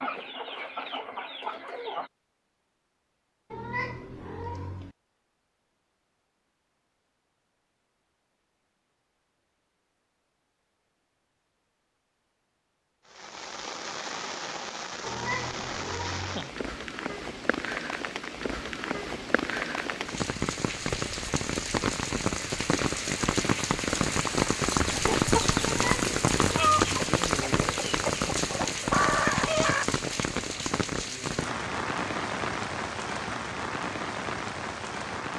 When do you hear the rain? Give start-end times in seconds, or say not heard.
13.1-35.3.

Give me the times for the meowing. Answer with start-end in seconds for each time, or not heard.
3.5-5.0, 15.0-16.4, 25.6-26.9.